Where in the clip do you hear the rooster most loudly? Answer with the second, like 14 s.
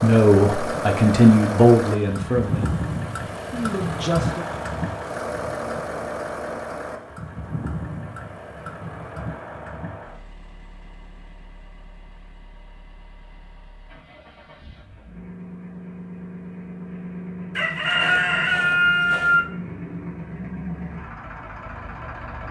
19 s.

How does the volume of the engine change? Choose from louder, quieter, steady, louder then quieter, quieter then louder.
quieter then louder.